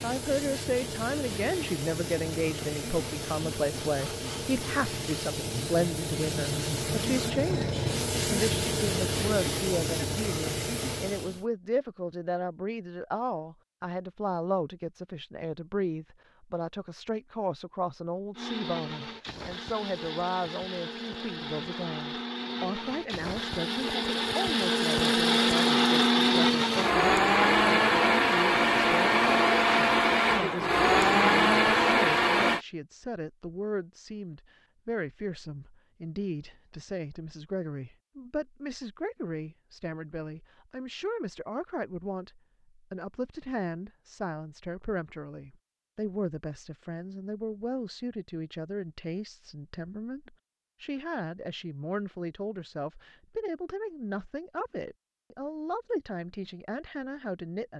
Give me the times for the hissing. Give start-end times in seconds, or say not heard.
0.0-11.4.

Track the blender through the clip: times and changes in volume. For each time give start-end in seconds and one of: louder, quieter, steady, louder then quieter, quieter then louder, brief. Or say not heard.
18.4-32.6 louder.